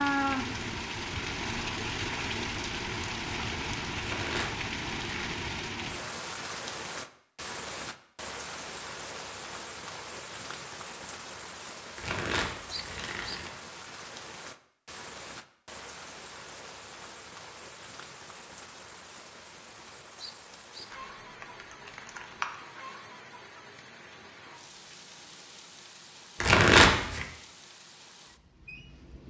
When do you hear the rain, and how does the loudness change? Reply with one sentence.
You can hear the rain from 0.0 to 29.2 s, getting quieter.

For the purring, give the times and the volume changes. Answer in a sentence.
The purring can't be heard in this clip.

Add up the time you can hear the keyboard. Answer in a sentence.
The keyboard can be heard for 2 seconds in total.